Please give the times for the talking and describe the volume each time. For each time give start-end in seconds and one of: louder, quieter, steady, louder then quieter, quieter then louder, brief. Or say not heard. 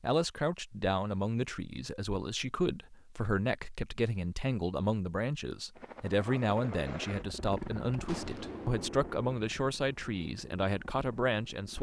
0.0-11.7 steady.